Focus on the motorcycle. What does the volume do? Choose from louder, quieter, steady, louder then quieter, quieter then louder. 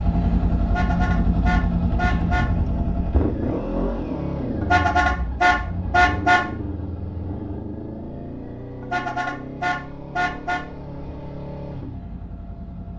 quieter.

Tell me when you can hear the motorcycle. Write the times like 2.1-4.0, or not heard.
0.0-12.9.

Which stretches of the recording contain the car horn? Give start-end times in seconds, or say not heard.
0.7-2.5, 4.6-6.5, 8.8-10.7.